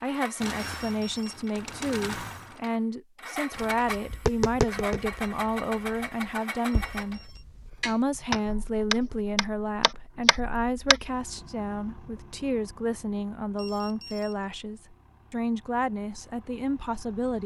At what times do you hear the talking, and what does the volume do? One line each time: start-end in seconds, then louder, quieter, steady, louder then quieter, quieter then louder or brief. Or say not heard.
0.0-7.2 steady
7.8-17.4 steady.